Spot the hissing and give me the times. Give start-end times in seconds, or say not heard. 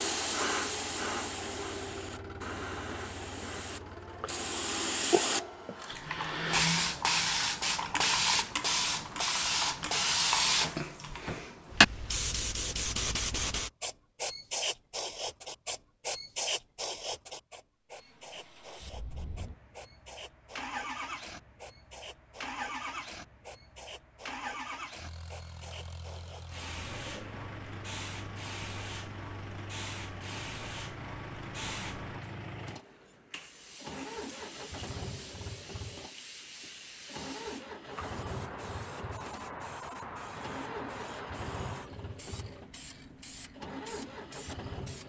0.0-45.0.